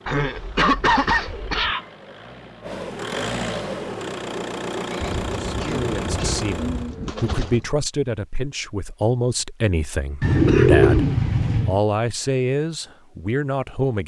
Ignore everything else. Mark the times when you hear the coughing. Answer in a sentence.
You can hear the coughing from 0.1 to 1.8 s, from 4.8 to 6.5 s and from 10.4 to 11.1 s.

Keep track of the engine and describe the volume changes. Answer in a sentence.
The loudness of the engine goes up.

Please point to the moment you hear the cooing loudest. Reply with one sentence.
The loudest moment of the cooing is at 11 seconds.